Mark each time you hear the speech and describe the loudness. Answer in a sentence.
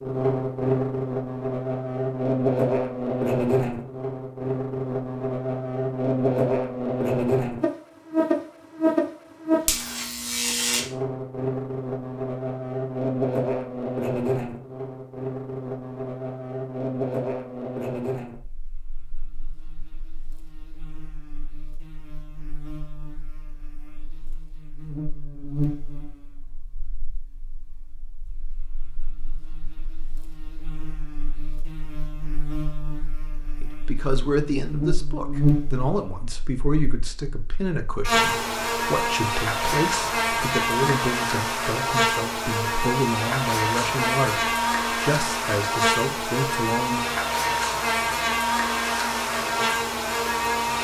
The speech can be heard from 33.6 to 47.1 s, at a steady volume.